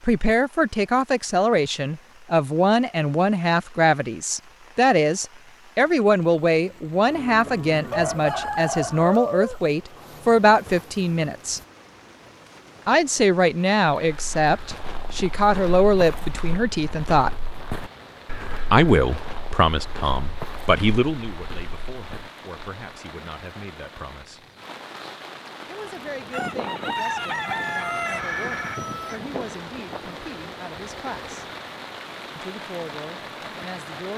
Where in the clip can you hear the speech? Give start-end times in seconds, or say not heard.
0.1-11.6, 12.8-17.4, 18.7-24.4, 25.6-31.4, 32.4-34.1.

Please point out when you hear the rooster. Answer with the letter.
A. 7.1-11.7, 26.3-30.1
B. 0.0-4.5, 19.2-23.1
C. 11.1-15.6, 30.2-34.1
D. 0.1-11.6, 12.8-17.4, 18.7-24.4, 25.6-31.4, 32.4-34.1
A.